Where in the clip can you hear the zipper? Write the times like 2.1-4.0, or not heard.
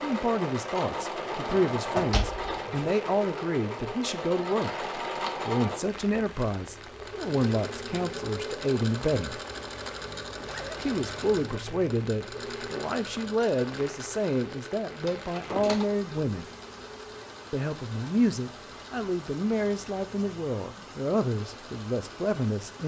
10.3-10.9.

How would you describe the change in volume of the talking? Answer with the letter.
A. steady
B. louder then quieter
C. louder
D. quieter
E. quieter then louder
A.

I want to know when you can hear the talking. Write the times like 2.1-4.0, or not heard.
0.0-9.4, 10.8-16.4, 17.5-22.8.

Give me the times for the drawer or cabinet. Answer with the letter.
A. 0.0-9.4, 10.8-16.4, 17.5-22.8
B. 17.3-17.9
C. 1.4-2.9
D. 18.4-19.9
C.